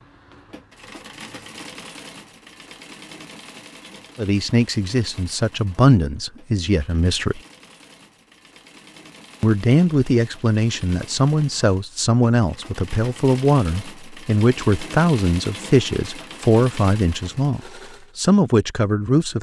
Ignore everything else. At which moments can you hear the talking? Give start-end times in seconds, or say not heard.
4.2-7.4, 9.4-19.3.